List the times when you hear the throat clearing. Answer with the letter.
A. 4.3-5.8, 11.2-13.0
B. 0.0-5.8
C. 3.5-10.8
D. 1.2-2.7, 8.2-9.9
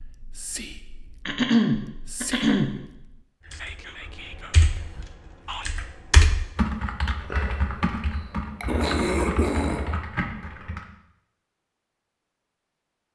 D.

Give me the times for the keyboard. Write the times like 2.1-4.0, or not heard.
3.5-10.8.